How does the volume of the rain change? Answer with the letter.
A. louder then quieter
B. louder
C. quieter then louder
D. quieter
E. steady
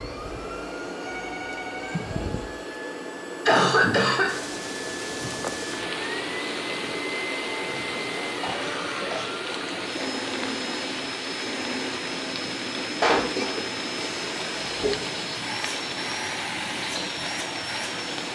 E.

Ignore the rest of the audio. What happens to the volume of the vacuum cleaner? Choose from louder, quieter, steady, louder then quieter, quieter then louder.
steady.